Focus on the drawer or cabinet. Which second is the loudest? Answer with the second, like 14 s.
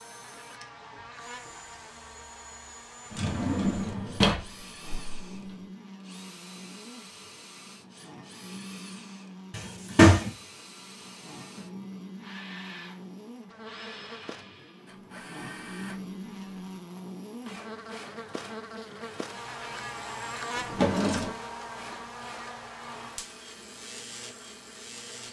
10 s.